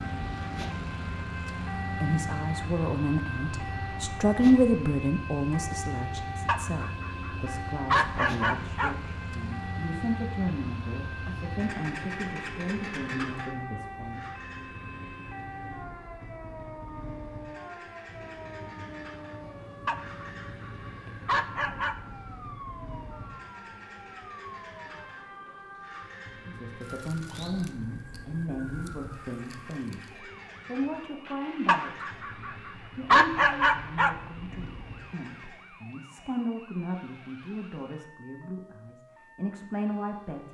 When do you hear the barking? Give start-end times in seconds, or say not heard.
6.5-8.9, 19.9-21.9, 31.6-32.5, 33.1-34.1.